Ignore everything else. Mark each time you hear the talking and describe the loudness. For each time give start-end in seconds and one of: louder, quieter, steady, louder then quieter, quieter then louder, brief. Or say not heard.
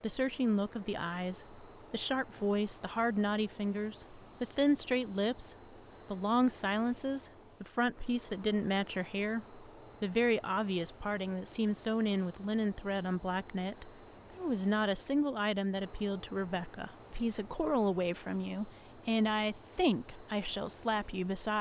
0.0-21.5 steady.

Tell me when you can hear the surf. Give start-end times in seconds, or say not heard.
not heard.